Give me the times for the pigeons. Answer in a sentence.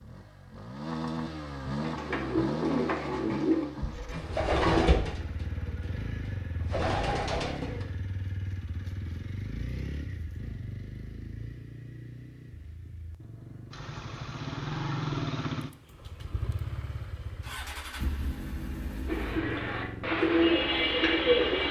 The pigeons can be heard from 1.8 to 7.8 s and from 19.1 to 21.6 s.